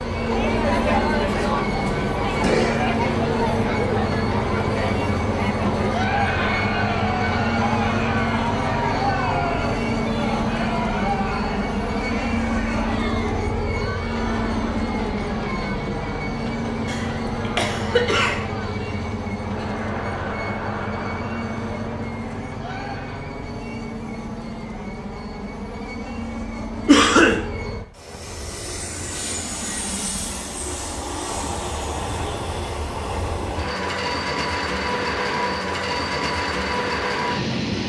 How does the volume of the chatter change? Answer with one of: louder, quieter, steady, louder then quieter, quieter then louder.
quieter.